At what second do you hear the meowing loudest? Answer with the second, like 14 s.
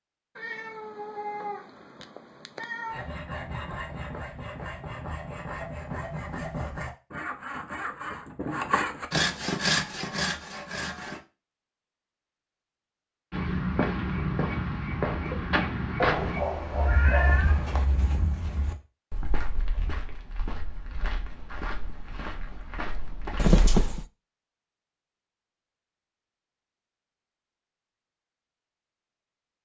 24 s.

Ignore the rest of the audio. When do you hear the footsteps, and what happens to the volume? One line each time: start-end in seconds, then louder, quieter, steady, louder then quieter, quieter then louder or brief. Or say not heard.
13.3-23.6 quieter.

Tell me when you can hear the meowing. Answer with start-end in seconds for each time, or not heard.
0.3-3.1, 16.0-17.9, 23.4-24.1.